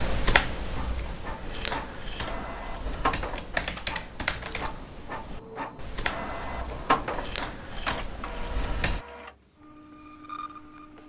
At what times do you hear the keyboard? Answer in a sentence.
You can hear the keyboard from 0.0 to 9.0 s.